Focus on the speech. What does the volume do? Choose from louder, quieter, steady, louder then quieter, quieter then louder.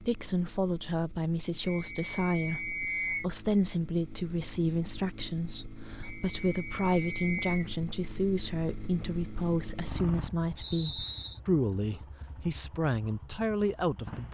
steady.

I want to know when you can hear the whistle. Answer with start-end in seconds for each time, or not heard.
1.6-3.2, 6.0-7.6, 10.6-11.4.